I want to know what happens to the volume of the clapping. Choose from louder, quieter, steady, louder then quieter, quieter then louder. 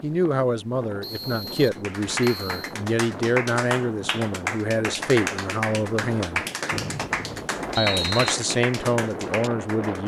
steady.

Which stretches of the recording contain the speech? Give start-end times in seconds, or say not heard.
0.0-6.4, 7.8-10.0.